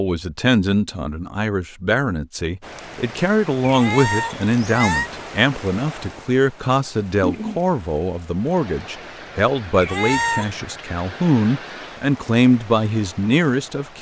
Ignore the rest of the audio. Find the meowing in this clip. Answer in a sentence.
You can hear the meowing from 3.6 to 5.1 s and from 9.8 to 10.6 s.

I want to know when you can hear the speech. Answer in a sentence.
The speech can be heard from 0.0 to 13.9 s.